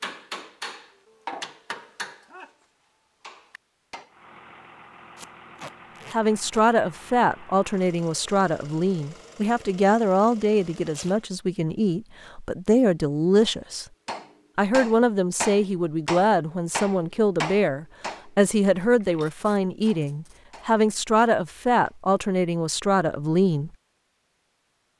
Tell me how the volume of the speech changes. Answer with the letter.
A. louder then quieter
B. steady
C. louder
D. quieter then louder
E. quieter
B.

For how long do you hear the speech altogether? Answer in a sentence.
You can hear the speech for 17 seconds altogether.